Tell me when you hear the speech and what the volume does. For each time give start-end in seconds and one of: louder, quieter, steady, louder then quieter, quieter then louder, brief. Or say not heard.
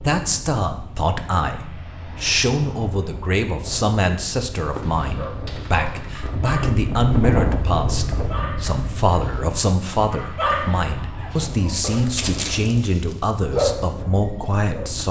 0.0-15.0 steady.